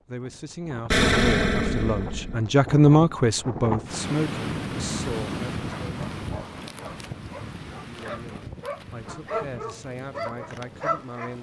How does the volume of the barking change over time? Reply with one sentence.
The volume of the barking goes up.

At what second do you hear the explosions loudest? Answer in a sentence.
The loudest moment of the explosions is at 1 second.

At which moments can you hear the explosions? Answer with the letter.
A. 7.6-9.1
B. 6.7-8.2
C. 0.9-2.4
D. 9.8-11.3
C.